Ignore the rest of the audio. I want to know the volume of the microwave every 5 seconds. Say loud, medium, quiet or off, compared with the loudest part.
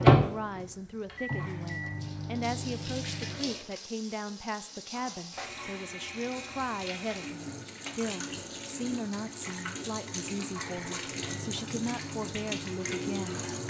loud, off, quiet.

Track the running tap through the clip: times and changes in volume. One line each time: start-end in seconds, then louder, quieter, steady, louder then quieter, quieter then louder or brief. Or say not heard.
0.1-13.6 louder.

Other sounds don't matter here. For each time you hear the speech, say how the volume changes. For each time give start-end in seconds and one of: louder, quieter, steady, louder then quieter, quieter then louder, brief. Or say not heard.
0.0-13.4 steady.